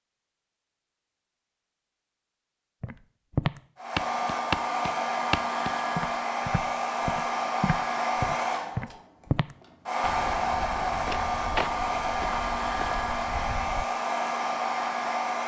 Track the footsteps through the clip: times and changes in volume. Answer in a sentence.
You can hear the footsteps from 2.8 to 13.8 s, getting quieter.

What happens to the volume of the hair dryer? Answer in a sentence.
The volume of the hair dryer stays about the same.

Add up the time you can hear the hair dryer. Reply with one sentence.
You can hear the hair dryer for 12 seconds altogether.